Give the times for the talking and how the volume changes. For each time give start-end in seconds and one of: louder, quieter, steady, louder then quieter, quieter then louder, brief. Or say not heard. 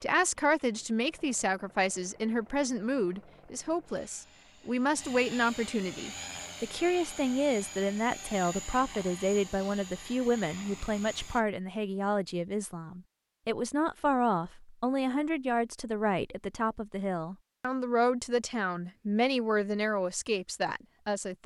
0.0-21.4 steady.